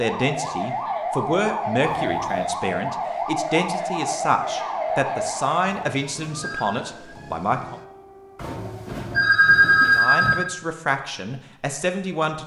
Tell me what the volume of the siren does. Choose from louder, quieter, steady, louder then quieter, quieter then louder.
quieter.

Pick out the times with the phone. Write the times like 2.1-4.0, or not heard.
1.9-2.5, 5.7-6.8, 8.3-10.4.